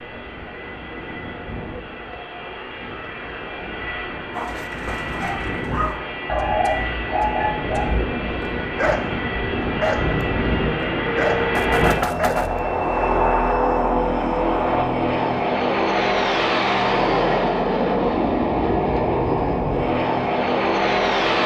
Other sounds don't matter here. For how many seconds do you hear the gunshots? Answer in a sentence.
The gunshots can be heard for 2 seconds in total.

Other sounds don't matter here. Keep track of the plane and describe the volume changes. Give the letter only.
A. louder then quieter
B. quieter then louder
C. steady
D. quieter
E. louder
E.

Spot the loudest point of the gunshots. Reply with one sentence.
The volume of the gunshots peaks at 12 seconds.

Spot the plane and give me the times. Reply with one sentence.
The plane can be heard from 0.0 to 21.4 s.